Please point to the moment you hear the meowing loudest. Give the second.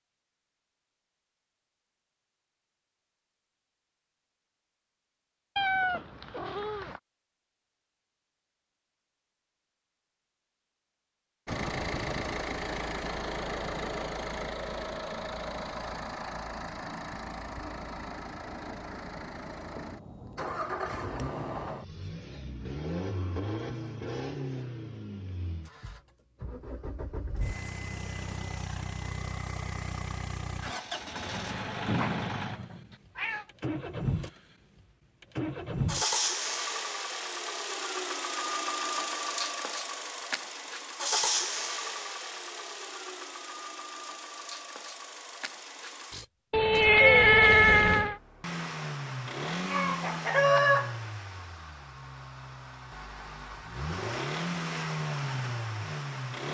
47 s.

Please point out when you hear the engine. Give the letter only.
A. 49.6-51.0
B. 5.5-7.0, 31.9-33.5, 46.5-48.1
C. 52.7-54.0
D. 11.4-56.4
D.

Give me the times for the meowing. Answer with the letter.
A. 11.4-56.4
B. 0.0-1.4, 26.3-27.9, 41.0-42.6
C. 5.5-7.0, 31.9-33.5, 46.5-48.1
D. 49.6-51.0
C.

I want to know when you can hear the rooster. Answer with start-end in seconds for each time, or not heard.
49.6-51.0.